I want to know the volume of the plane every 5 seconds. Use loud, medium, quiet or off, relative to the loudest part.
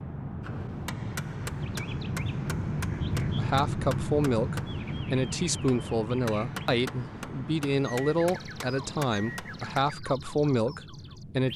loud, medium, quiet.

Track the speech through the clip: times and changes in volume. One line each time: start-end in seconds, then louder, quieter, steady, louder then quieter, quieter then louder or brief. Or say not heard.
3.4-11.5 steady.